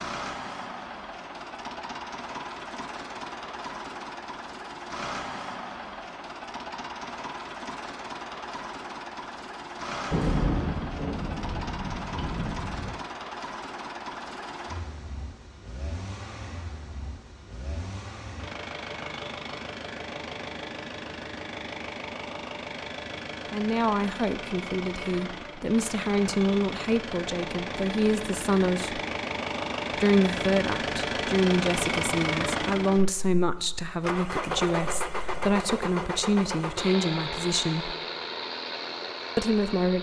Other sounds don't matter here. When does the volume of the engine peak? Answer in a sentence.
The loudest moment of the engine is at 32 seconds.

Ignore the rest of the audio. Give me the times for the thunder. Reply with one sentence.
The thunder can be heard from 10.1 to 13.1 s.